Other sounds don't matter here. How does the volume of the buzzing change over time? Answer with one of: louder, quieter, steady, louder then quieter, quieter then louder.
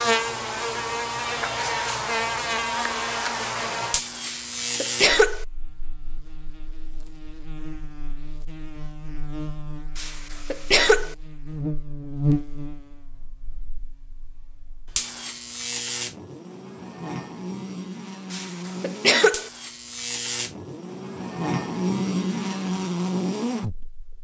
quieter then louder.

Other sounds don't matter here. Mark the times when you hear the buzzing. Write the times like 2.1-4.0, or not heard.
0.0-24.1.